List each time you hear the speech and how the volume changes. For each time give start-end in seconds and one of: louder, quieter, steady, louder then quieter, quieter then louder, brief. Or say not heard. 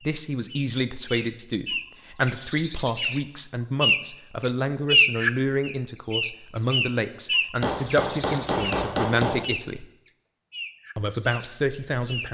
0.1-9.8 steady
10.9-12.2 brief.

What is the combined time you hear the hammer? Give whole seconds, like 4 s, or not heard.
2 s.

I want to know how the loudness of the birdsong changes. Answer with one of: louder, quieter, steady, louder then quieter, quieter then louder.
louder then quieter.